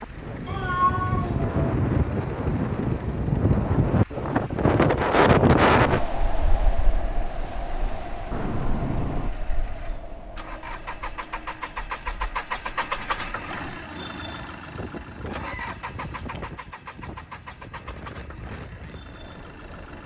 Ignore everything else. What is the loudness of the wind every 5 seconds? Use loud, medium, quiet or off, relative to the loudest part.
loud, loud, quiet, quiet.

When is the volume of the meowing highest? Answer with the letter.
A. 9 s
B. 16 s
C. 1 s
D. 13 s
C.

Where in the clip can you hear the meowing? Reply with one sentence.
The meowing can be heard from 0.5 to 1.6 s, from 8.3 to 9.3 s and from 15.2 to 16.4 s.